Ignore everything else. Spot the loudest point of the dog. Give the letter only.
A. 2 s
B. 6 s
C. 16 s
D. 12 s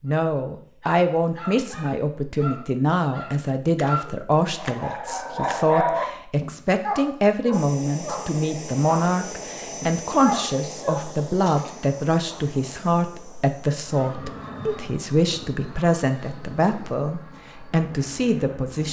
B.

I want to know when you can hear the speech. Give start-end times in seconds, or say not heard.
0.0-18.8.